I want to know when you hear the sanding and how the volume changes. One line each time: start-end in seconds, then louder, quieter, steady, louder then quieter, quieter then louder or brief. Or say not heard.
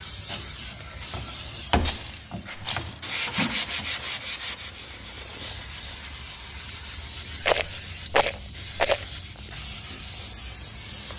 0.2-10.3 louder then quieter.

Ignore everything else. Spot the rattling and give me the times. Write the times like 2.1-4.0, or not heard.
1.8-3.0, 7.4-9.1.